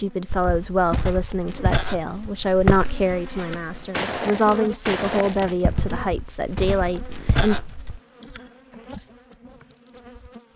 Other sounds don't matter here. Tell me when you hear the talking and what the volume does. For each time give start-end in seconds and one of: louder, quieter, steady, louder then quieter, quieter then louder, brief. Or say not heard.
0.0-7.6 steady.